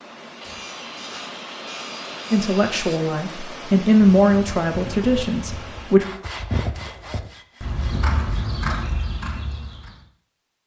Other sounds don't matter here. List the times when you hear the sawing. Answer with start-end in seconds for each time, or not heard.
0.4-3.0, 6.0-8.4.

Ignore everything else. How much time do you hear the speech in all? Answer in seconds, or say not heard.
4 s.